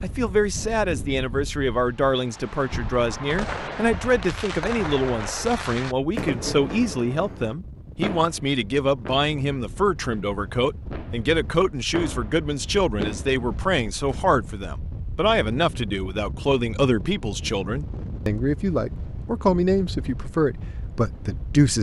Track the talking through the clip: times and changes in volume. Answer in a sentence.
The talking can be heard from 0.0 to 21.7 s, at a steady volume.